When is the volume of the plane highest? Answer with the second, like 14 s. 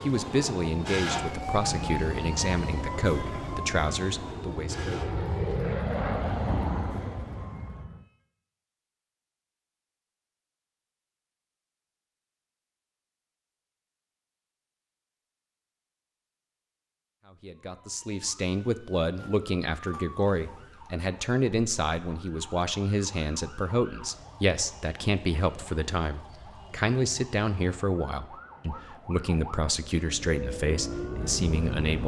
6 s.